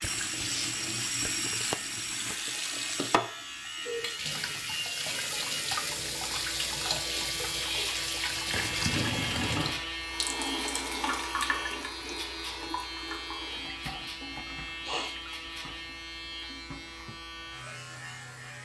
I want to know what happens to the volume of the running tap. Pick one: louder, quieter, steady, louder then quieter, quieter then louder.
quieter.